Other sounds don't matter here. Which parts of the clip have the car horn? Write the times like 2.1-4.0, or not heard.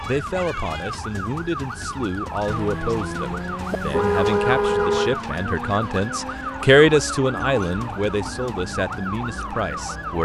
3.8-5.2.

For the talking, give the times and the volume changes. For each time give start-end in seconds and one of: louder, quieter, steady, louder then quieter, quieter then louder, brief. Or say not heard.
0.0-10.2 louder then quieter.